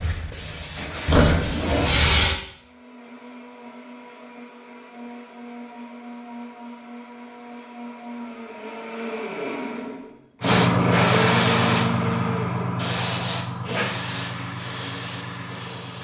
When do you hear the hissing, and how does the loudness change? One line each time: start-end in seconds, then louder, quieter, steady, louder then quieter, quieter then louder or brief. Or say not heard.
0.0-2.4 brief
10.4-15.9 quieter.